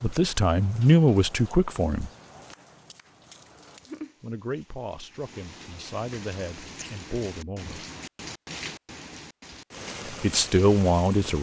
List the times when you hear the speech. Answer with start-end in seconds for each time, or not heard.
0.0-2.1, 4.2-7.8, 10.1-11.3.